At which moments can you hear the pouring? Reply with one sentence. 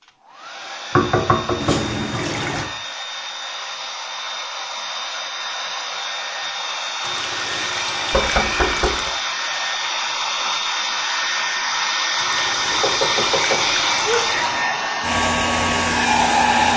You can hear the pouring from 1.6 to 2.7 s, from 7.0 to 9.2 s and from 12.2 to 14.7 s.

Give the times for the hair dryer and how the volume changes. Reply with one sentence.
The hair dryer can be heard from 0.0 to 16.7 s, getting louder.